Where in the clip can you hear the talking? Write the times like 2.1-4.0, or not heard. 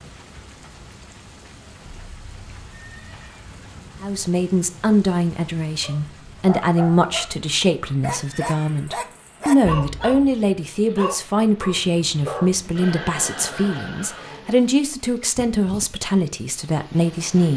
4.0-17.5.